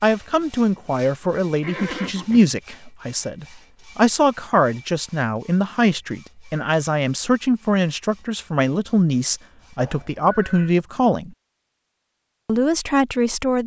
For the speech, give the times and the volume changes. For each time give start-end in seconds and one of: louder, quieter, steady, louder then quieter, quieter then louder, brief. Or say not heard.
0.0-11.3 steady
12.4-13.6 brief.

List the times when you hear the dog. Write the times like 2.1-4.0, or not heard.
not heard.